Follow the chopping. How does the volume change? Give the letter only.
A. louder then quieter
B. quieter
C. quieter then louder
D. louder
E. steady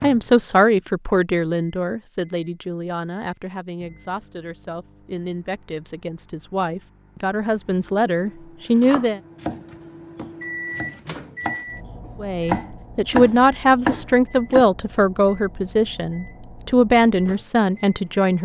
C.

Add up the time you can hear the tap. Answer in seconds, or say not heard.
not heard.